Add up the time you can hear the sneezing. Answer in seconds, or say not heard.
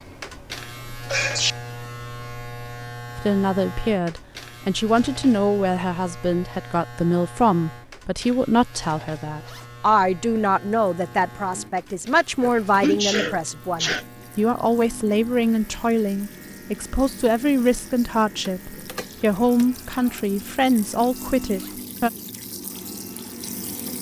2 s.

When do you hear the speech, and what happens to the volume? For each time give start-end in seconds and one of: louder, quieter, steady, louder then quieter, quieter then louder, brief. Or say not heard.
3.1-22.1 steady.